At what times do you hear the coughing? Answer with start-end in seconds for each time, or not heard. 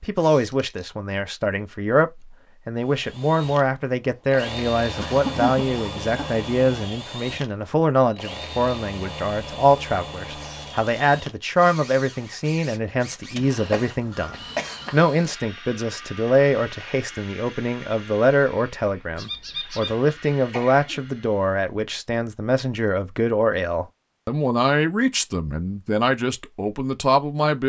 5.0-6.5, 13.7-15.1, 19.1-21.1.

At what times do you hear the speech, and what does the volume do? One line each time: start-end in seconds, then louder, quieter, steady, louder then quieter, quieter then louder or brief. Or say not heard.
0.0-27.6 steady.